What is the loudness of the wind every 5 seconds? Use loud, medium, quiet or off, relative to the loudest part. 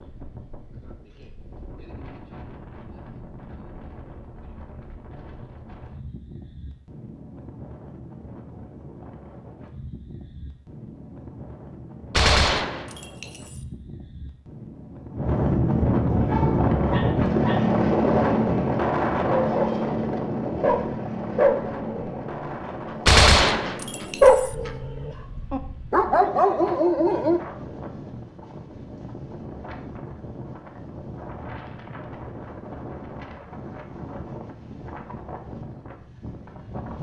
quiet, quiet, quiet, loud, medium, quiet, quiet, quiet.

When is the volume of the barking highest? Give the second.
24 s.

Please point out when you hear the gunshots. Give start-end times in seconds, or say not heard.
12.1-13.7, 23.1-24.6.